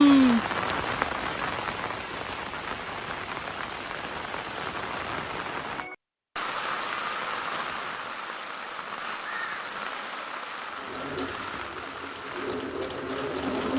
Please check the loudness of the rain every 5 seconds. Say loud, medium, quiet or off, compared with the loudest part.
loud, medium, medium.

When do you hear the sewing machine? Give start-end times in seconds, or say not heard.
10.7-13.7.